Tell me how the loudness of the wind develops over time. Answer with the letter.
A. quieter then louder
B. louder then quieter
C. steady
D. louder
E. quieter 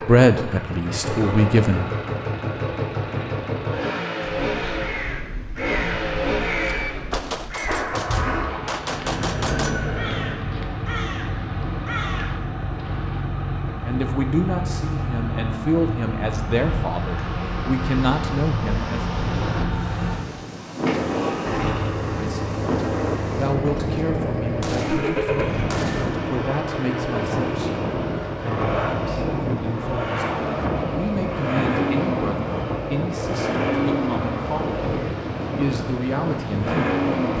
C.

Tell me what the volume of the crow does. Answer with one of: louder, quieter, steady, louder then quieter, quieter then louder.
steady.